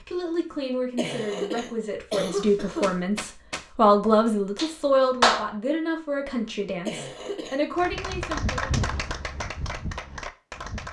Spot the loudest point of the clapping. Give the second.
5 s.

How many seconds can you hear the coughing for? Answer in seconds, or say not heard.
3 s.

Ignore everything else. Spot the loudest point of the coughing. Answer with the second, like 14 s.
2 s.